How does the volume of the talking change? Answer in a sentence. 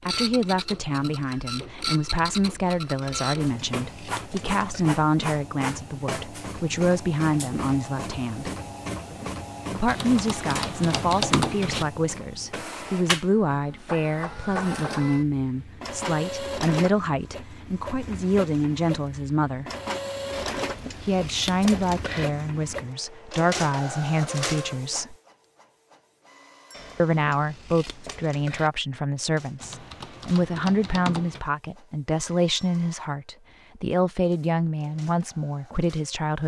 The volume of the talking stays about the same.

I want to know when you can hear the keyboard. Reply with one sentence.
You can hear the keyboard from 9.8 to 11.8 s and from 29.6 to 31.4 s.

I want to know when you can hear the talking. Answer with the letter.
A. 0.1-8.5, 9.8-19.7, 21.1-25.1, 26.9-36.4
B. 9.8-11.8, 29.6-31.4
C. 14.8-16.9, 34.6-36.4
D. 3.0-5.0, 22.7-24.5
A.